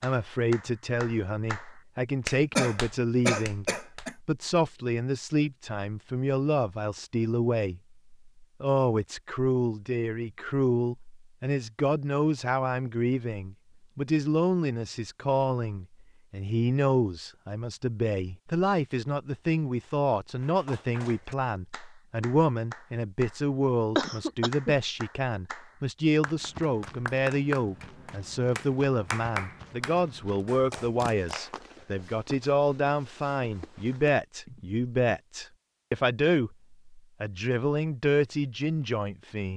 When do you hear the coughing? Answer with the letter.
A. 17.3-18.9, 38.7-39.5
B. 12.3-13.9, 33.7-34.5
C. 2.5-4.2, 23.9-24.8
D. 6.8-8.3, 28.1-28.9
C.